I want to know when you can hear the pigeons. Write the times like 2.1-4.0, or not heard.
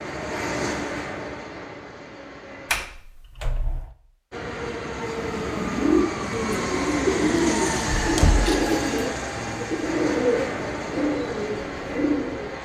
5.0-12.6.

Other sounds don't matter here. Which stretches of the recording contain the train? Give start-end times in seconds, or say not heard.
0.0-2.9, 4.3-12.6.